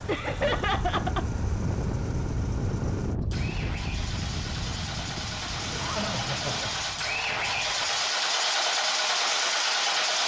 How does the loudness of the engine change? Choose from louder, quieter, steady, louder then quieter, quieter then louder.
louder.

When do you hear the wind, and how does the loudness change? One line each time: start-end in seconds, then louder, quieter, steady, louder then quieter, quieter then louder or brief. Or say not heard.
0.0-8.2 quieter.